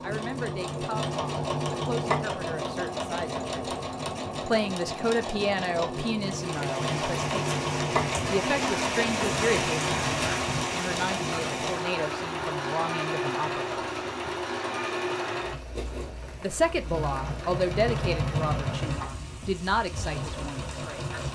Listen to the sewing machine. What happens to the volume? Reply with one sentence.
The volume of the sewing machine stays about the same.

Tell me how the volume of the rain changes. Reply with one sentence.
The loudness of the rain goes down.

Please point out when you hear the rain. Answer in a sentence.
The rain can be heard from 6.2 to 21.2 s.